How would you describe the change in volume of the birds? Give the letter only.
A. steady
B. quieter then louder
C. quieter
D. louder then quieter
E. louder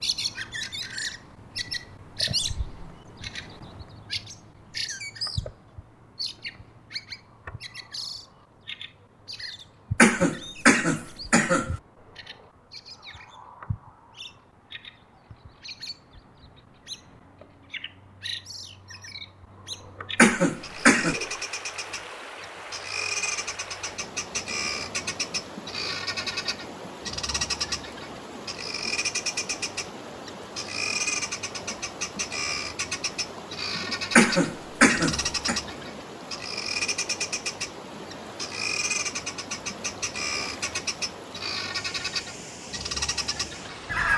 B.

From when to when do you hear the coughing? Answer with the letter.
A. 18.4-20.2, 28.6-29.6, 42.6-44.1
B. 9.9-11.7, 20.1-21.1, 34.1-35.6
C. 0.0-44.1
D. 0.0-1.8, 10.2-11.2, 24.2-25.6
B.